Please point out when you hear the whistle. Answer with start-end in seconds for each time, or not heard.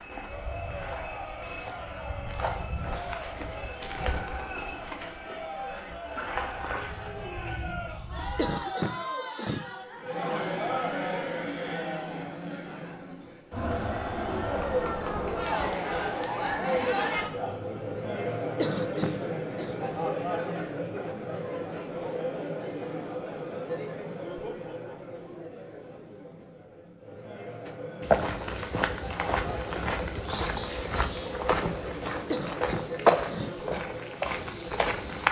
not heard.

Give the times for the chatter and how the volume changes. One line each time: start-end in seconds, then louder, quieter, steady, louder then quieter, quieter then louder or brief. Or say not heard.
0.1-35.2 louder then quieter.